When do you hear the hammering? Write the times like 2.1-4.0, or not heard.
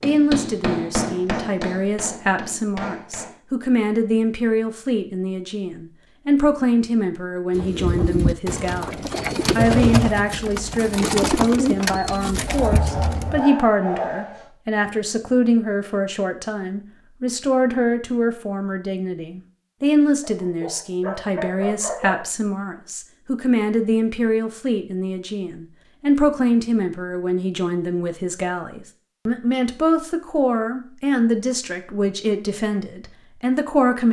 0.0-3.4.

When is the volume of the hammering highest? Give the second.
1 s.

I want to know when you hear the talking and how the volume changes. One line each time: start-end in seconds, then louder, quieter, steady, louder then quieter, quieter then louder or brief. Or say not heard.
0.0-34.0 steady.